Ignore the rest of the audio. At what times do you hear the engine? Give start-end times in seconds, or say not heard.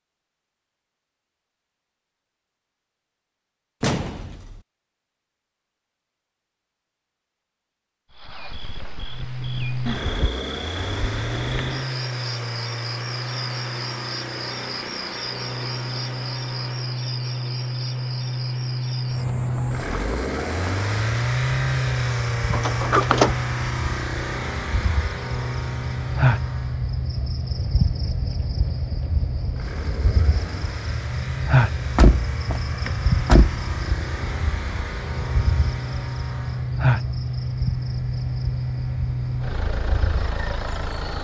9.1-41.1.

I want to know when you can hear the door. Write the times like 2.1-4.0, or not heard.
3.8-4.6, 22.5-23.4, 31.8-33.6.